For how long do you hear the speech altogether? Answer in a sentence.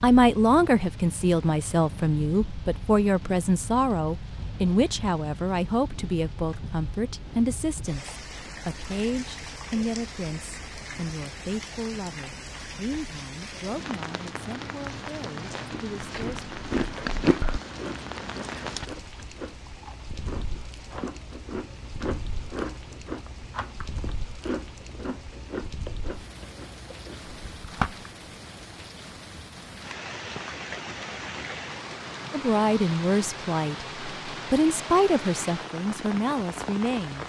The speech can be heard for 21 seconds in total.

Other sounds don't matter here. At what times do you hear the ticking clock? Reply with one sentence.
The ticking clock can't be heard in this clip.